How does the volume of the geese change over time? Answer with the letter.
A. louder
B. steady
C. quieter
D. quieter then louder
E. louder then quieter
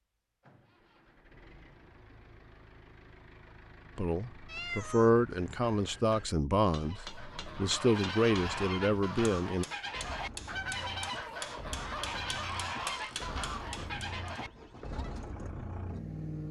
B.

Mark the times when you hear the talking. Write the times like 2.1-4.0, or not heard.
4.0-9.7.